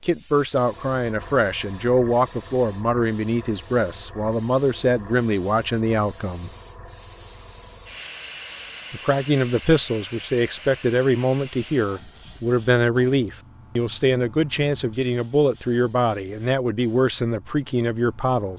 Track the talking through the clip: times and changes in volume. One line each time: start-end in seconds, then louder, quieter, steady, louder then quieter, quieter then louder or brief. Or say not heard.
0.0-6.5 steady
8.9-18.5 steady.